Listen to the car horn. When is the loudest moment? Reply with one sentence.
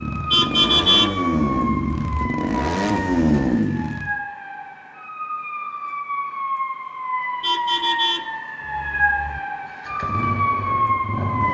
The volume of the car horn peaks at 1 second.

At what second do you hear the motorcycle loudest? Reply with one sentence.
The loudest moment of the motorcycle is at 3 seconds.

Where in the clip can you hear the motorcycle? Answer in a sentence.
The motorcycle can be heard from 0.0 to 4.2 s and from 9.7 to 11.4 s.